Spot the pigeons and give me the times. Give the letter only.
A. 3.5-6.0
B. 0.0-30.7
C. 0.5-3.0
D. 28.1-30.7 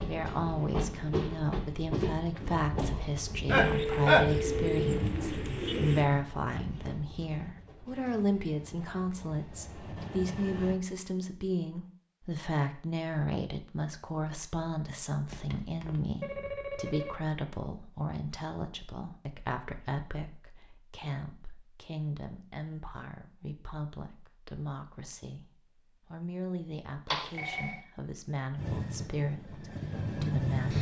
A.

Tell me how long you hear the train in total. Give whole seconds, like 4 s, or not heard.
13 s.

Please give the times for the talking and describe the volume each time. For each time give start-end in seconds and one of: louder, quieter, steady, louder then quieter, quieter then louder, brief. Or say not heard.
0.0-30.7 quieter.